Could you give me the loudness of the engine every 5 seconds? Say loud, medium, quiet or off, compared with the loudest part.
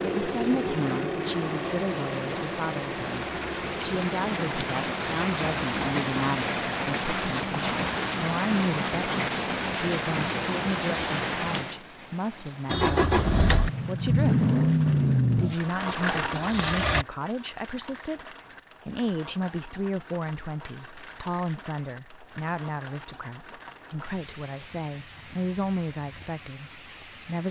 medium, off, loud, loud, off, off.